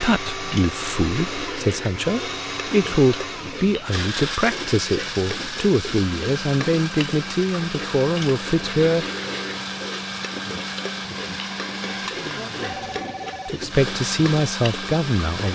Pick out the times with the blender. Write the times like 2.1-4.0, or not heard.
0.0-15.4.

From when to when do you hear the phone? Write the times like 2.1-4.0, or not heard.
12.6-13.6.